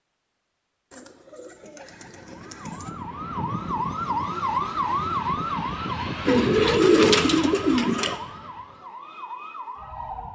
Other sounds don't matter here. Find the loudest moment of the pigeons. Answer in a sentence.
The volume of the pigeons peaks at 7 seconds.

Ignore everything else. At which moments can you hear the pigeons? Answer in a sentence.
You can hear the pigeons from 0.9 to 2.9 s and from 6.2 to 8.2 s.